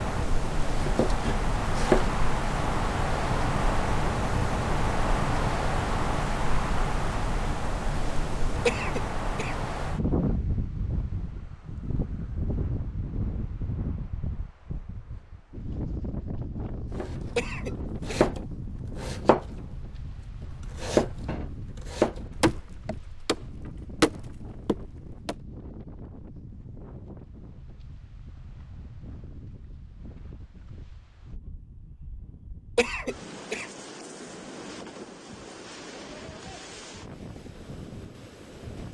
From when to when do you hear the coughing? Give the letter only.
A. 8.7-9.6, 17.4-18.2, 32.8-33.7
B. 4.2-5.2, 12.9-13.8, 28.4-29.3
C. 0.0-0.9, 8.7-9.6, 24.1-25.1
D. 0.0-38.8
A.